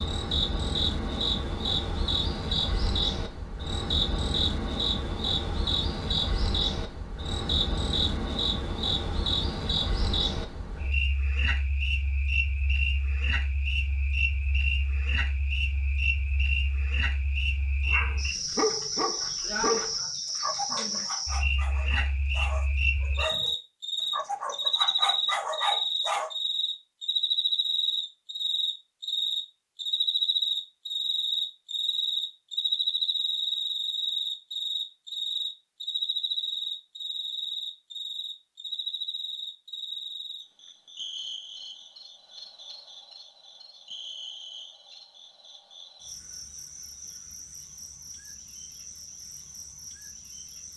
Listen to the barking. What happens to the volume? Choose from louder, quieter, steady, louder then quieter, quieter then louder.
quieter then louder.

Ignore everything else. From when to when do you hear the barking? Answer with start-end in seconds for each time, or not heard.
17.9-26.3.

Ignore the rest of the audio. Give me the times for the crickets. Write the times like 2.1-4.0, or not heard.
0.0-50.7.